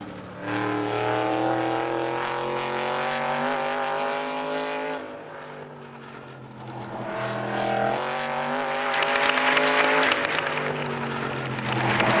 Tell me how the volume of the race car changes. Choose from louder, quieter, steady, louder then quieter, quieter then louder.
quieter then louder.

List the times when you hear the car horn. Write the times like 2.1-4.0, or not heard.
not heard.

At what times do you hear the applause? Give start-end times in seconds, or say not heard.
8.6-12.1.